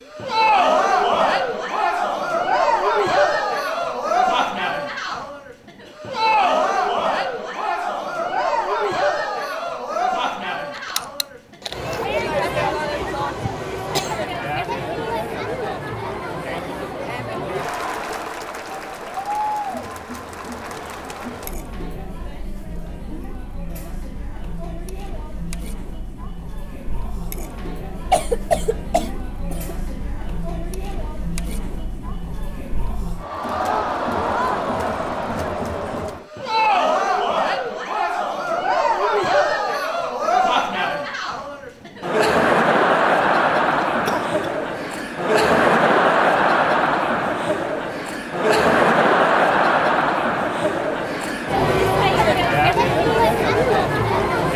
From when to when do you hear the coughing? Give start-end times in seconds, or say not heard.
12.6-14.2, 28.1-29.8, 43.8-44.5.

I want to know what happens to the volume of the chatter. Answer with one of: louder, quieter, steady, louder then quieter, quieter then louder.
quieter then louder.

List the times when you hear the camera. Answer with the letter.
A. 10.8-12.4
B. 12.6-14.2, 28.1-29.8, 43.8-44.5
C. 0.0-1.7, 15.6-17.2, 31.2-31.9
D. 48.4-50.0
A.